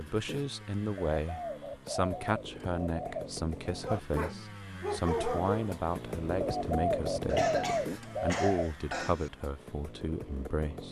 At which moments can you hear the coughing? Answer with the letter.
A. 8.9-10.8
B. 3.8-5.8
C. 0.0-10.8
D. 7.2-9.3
D.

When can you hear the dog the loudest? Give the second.
5 s.